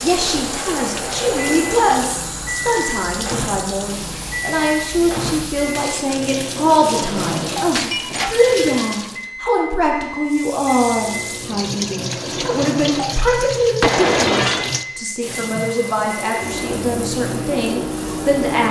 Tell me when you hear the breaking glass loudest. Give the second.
14 s.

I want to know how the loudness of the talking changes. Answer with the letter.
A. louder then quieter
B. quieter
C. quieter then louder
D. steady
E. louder
D.